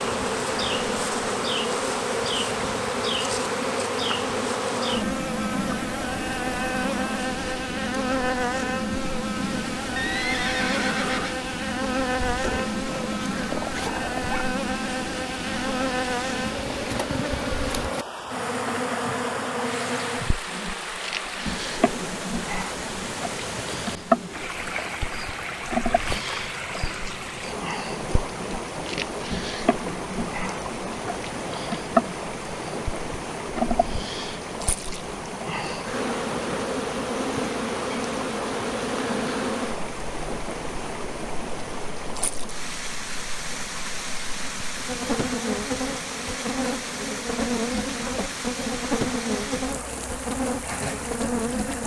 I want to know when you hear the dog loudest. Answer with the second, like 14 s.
14 s.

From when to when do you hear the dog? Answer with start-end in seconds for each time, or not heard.
12.4-14.4.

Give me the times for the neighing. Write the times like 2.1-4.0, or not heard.
9.9-11.3.